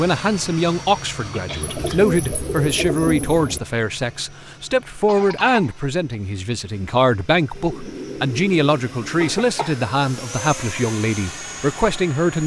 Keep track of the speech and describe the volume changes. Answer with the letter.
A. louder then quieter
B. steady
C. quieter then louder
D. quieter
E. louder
B.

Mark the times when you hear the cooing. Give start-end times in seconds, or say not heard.
1.6-3.6, 7.5-9.6.